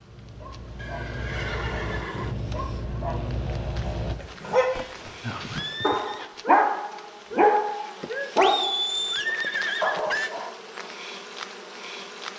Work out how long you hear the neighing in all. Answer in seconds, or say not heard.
6 s.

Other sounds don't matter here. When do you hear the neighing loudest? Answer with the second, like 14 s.
9 s.